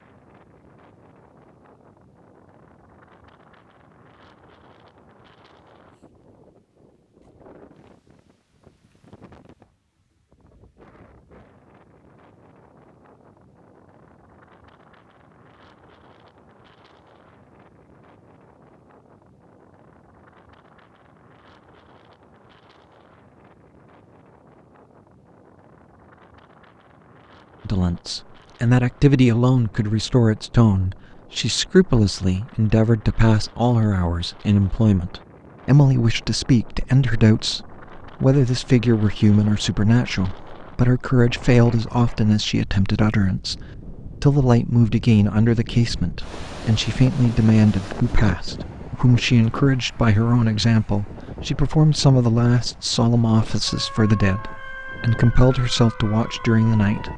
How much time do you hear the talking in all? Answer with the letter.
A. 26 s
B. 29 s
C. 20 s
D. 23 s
B.